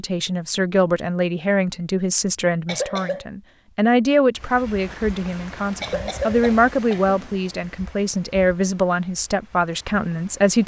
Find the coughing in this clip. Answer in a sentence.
The coughing can be heard from 2.6 to 3.2 s and from 5.8 to 7.3 s.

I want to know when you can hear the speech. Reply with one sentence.
You can hear the speech from 0.0 to 10.6 s.